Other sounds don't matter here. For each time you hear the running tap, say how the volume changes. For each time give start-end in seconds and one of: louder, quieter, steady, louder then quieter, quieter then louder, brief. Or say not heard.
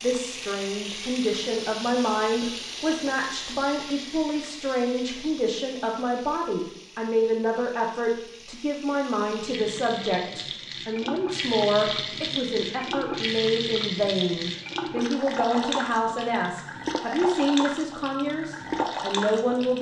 0.0-19.7 quieter then louder.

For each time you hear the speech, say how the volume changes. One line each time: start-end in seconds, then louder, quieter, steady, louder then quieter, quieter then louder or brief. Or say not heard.
0.0-19.7 steady.